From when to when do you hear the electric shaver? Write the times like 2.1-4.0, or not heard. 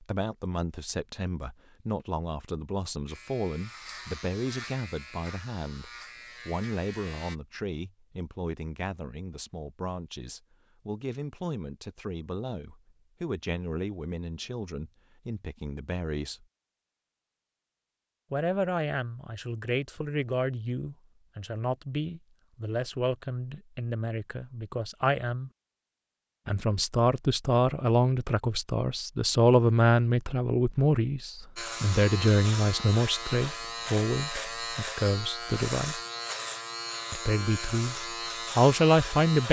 3.0-7.3, 31.6-39.4.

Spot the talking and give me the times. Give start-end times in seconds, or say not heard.
0.0-16.4, 18.3-25.5, 26.4-36.0, 37.1-39.4.